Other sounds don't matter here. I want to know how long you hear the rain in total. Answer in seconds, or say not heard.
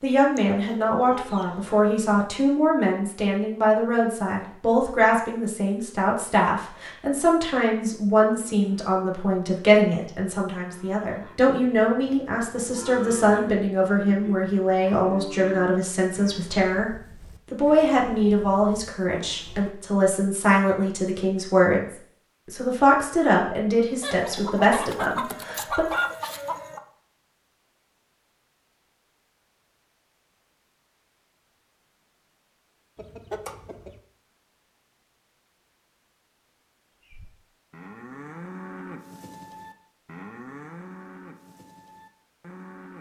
not heard.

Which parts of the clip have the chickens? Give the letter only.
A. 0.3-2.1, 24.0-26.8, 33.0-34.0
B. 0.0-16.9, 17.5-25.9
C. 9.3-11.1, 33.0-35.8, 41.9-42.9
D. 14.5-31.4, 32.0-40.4
A.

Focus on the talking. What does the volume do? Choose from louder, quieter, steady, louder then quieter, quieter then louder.
steady.